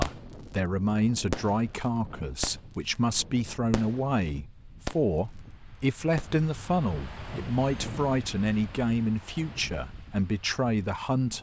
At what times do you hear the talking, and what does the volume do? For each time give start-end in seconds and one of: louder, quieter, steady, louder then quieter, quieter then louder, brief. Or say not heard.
0.0-11.3 steady.